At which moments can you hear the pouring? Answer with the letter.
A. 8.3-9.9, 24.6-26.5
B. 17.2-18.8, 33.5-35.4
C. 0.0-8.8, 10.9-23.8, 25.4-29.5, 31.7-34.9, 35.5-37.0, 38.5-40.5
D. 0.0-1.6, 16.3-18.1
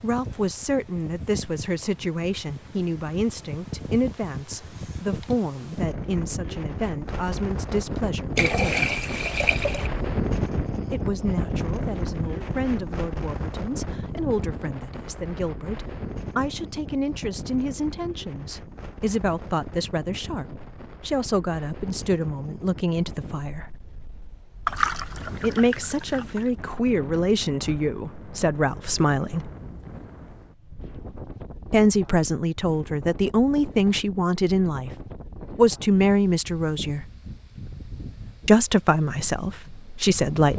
A.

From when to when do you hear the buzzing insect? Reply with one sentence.
The buzzing insect can't be heard in this clip.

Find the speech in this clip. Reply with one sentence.
The speech can be heard from 0.0 to 8.8 s, from 10.9 to 23.8 s, from 25.4 to 29.5 s, from 31.7 to 34.9 s, from 35.5 to 37.0 s and from 38.5 to 40.5 s.